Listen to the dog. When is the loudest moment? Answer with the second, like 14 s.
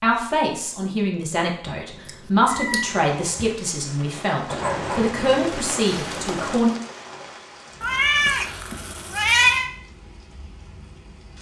5 s.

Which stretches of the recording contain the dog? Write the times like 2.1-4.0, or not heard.
4.5-6.6.